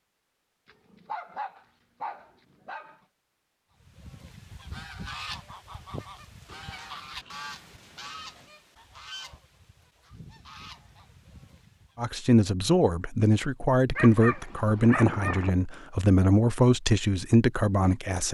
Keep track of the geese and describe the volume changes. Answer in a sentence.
The loudness of the geese goes down.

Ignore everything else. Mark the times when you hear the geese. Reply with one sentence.
You can hear the geese from 3.8 to 12.1 s.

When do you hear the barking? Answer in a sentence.
The barking can be heard from 0.7 to 3.0 s, from 6.5 to 8.5 s and from 13.9 to 15.5 s.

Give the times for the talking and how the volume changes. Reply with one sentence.
The talking can be heard from 11.9 to 18.2 s, at a steady volume.